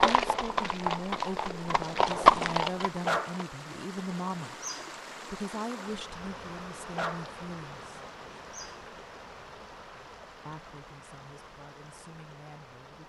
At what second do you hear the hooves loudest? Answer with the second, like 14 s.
2 s.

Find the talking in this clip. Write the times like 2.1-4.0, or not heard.
0.0-4.6, 5.2-8.0, 10.4-13.0.